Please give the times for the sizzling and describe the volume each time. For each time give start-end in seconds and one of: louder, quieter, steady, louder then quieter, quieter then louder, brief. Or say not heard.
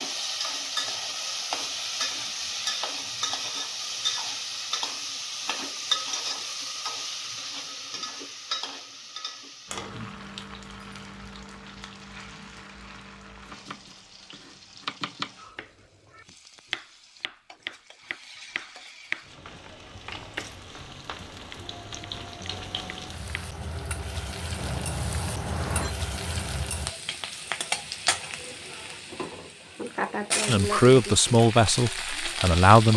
0.0-32.9 quieter then louder.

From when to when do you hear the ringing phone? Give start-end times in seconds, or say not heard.
24.6-25.9.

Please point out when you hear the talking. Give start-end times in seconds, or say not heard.
30.4-32.9.